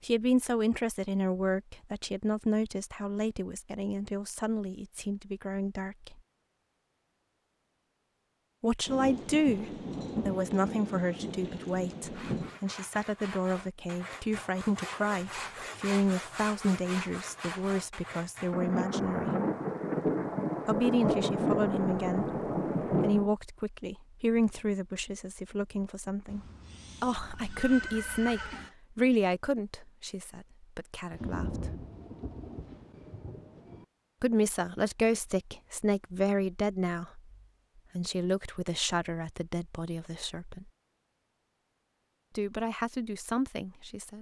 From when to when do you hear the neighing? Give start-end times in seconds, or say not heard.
26.2-28.8.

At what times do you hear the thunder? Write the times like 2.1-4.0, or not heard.
8.8-12.6, 18.5-23.3, 31.1-33.9.